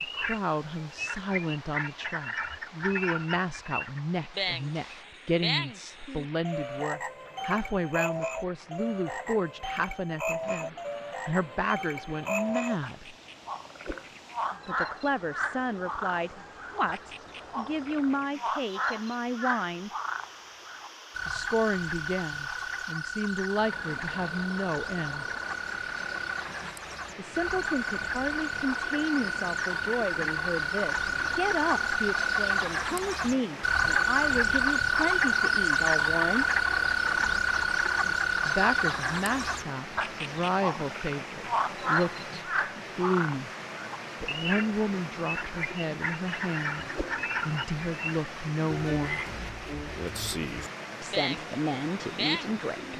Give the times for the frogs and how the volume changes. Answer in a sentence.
You can hear the frogs from 0.0 to 52.9 s, getting louder then quieter.